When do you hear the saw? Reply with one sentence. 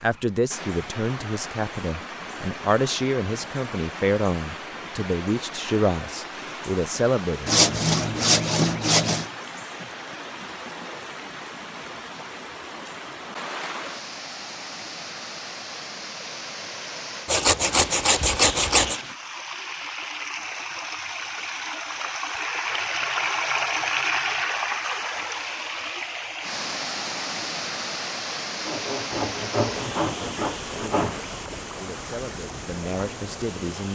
The saw can be heard from 7.5 to 9.2 s, from 17.2 to 19.0 s and from 28.6 to 31.2 s.